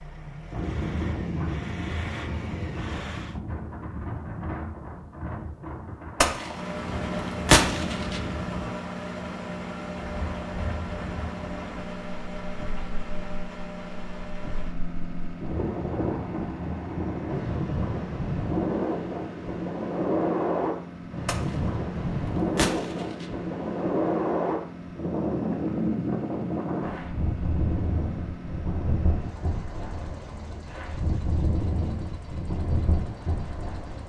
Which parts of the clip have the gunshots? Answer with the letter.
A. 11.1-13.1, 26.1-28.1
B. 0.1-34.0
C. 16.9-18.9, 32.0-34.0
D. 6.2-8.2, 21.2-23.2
D.